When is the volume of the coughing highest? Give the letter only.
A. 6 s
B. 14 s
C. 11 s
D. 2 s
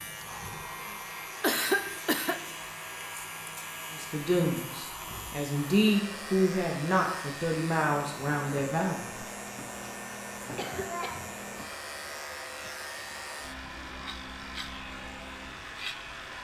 D.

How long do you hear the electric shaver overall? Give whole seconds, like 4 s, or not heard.
16 s.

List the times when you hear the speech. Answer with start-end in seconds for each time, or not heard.
3.9-9.2.